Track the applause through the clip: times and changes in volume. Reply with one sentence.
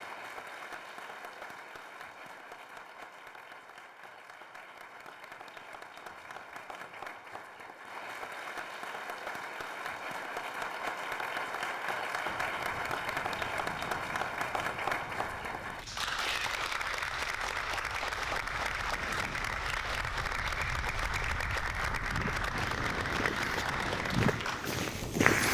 The applause can be heard from 0.0 to 25.5 s, getting louder.